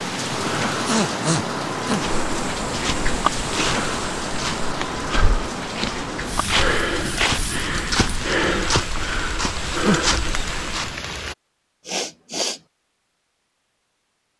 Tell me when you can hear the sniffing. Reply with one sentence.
You can hear the sniffing from 0.8 to 2.1 s, from 6.2 to 7.7 s and from 11.8 to 12.6 s.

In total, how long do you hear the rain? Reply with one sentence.
The rain can be heard for 11 seconds in total.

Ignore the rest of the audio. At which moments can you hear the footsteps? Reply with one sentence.
The footsteps can be heard from 1.9 to 10.9 s.